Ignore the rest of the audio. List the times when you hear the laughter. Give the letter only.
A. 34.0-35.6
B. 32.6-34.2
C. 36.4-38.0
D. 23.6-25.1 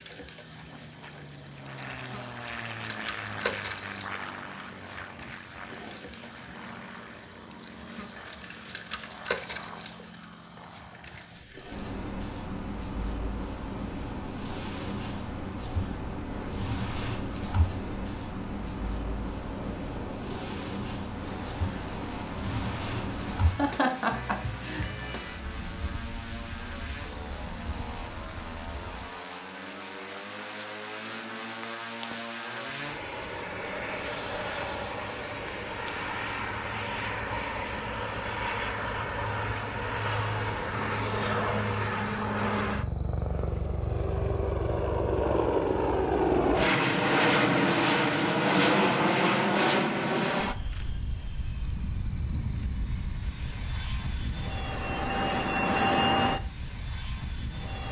D.